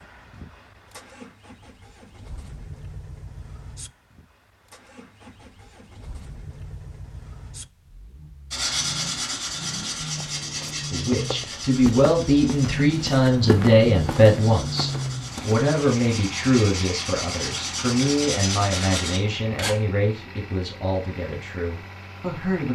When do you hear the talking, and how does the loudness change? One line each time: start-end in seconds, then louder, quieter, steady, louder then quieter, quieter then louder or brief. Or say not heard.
10.9-22.7 quieter.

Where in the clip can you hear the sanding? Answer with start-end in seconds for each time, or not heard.
8.5-19.8.